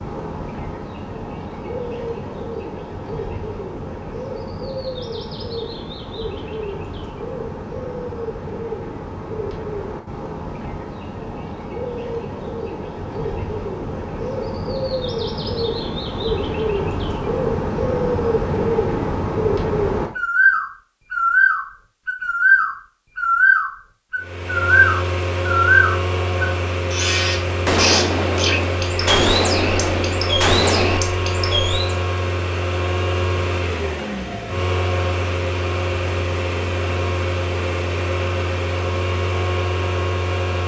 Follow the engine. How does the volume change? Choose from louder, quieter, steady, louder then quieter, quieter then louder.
steady.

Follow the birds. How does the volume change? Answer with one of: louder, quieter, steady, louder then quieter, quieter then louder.
louder.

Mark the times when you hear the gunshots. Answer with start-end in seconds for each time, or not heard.
27.6-31.0.